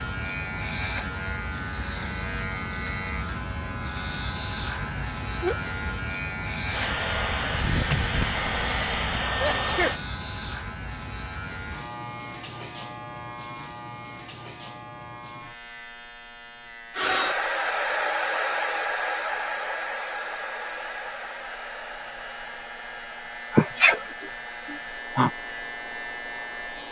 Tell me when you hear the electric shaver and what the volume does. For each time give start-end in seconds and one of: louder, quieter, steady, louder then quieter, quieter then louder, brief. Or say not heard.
0.0-26.8 quieter then louder.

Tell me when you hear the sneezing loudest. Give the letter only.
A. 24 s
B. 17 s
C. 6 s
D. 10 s
A.